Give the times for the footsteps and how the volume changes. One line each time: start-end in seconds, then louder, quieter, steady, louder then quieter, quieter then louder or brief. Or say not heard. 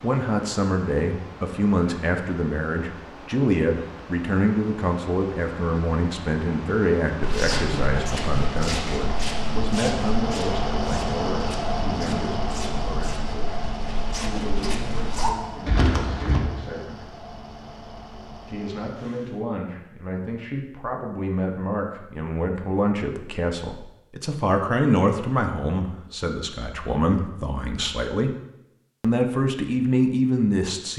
7.2-16.4 quieter then louder.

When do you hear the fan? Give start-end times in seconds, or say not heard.
0.0-19.4.